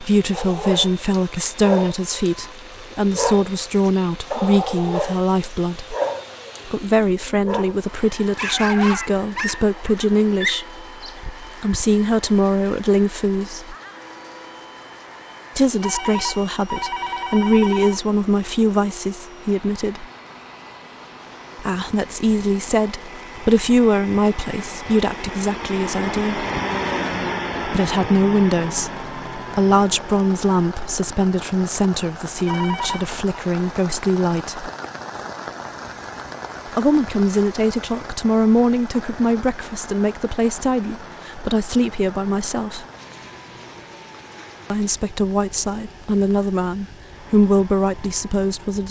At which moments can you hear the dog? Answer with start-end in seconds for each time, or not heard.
0.3-11.8.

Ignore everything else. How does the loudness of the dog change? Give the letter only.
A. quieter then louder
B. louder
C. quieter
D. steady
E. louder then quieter
D.